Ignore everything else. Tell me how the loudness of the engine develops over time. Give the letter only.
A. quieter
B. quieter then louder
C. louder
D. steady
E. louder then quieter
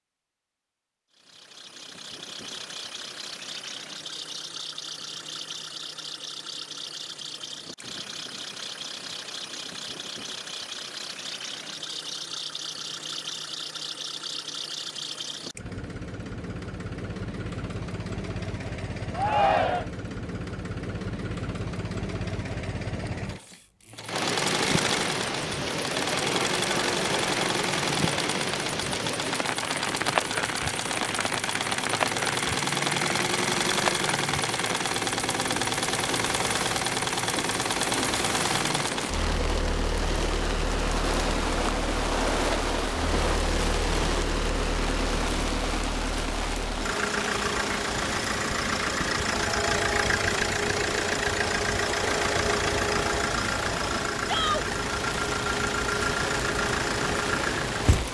C.